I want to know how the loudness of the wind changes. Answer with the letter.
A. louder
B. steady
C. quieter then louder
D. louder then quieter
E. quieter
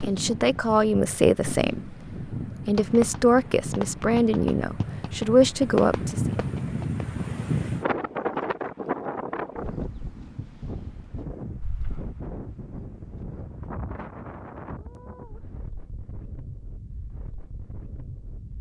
D.